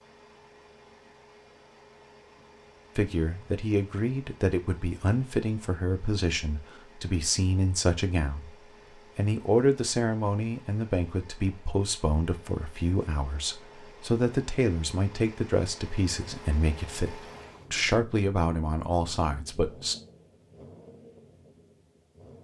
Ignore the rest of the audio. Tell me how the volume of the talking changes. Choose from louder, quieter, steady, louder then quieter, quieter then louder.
steady.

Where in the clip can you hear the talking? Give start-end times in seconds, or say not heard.
3.0-8.5, 9.2-19.9.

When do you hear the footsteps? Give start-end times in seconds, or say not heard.
not heard.